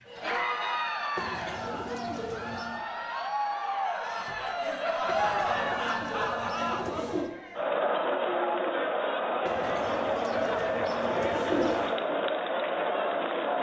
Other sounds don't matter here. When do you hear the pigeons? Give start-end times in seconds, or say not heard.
1.1-2.9, 5.0-7.3, 9.4-12.0.